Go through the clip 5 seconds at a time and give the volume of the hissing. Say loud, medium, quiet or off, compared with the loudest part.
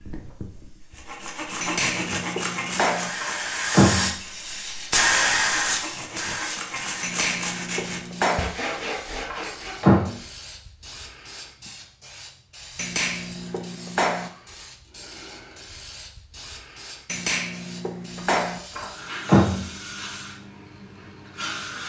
loud, loud, quiet, quiet, medium.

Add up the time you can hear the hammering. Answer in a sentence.
You can hear the hammering for 6 seconds altogether.